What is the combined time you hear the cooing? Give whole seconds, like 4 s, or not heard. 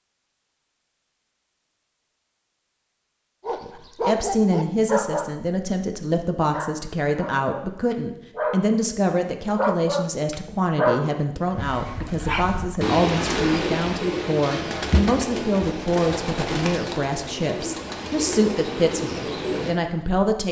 8 s.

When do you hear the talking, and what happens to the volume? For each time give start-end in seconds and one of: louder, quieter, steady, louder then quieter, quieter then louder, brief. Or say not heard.
3.6-20.4 steady.